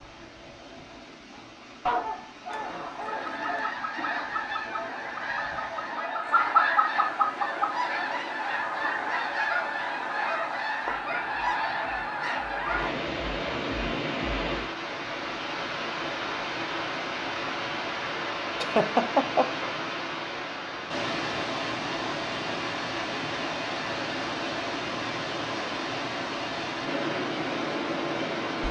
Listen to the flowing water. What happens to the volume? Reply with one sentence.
The loudness of the flowing water goes up.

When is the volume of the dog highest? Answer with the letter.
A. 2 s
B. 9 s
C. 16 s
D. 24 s
A.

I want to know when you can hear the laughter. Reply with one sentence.
The laughter can be heard from 18.6 to 19.5 s.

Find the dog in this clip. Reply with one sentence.
You can hear the dog from 1.9 to 3.8 s.